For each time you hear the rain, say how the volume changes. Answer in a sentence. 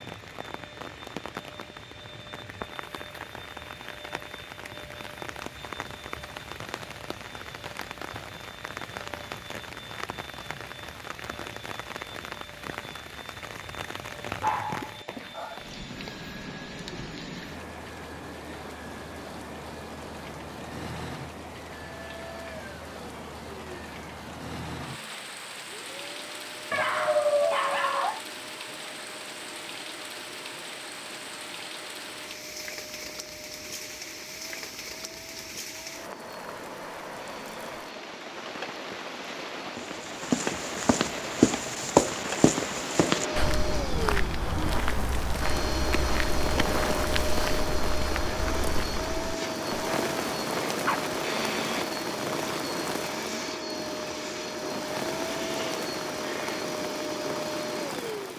You can hear the rain from 0.0 to 58.3 s, getting louder.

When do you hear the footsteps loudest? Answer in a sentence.
The loudest moment of the footsteps is at 42 seconds.